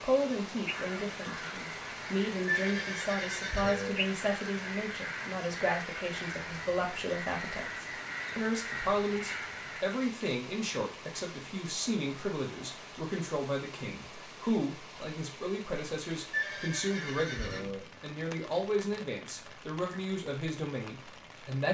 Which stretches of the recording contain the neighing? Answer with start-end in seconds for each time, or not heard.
2.5-4.0, 16.3-17.9.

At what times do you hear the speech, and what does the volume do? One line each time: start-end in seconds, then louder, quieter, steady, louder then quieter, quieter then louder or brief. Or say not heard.
0.0-21.6 steady.